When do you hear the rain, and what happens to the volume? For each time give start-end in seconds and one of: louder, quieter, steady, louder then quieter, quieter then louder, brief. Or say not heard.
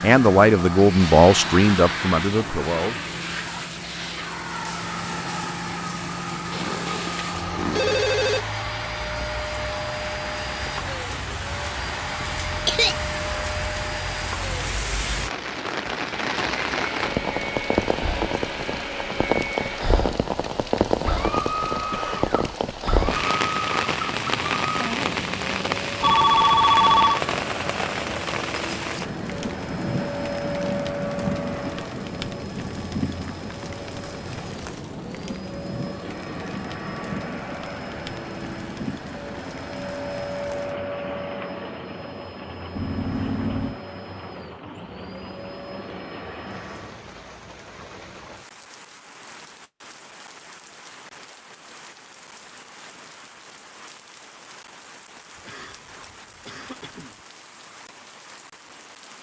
0.0-59.1 louder then quieter.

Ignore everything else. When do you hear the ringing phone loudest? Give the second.
27 s.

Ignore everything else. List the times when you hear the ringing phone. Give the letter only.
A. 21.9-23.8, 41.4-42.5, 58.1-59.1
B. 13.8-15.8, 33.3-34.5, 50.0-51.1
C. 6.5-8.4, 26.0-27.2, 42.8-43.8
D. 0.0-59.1
C.